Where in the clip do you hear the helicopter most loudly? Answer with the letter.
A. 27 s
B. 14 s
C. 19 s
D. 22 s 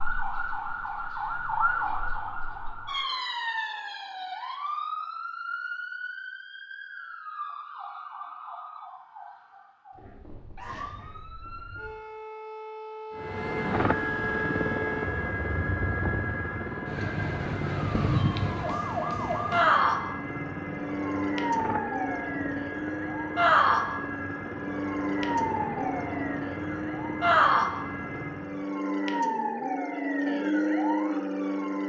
B.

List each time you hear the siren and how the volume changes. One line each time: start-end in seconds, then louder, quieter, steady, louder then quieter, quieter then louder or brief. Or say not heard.
0.0-31.8 quieter then louder.